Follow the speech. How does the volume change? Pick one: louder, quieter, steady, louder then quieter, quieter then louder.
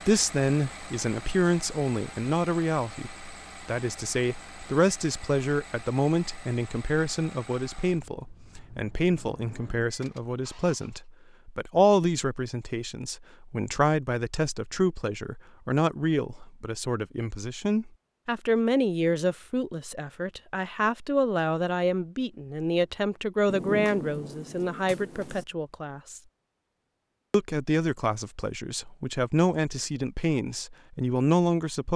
steady.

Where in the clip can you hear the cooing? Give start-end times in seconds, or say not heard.
not heard.